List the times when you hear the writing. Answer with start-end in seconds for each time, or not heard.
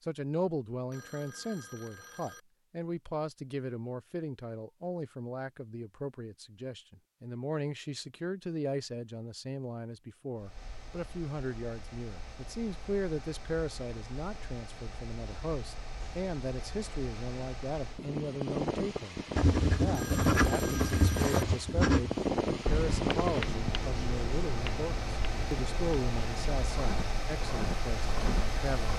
19.4-28.9.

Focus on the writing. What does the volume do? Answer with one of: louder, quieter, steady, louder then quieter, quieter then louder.
quieter then louder.